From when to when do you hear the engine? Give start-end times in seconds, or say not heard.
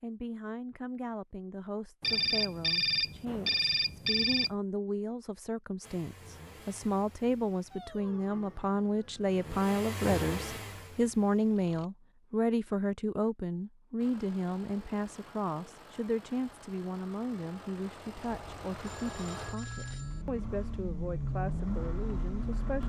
5.8-11.9, 13.9-22.8.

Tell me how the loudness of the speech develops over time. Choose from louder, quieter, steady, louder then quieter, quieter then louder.
louder then quieter.